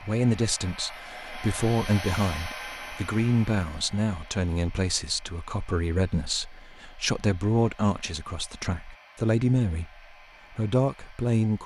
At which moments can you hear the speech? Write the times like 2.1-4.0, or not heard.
0.0-11.6.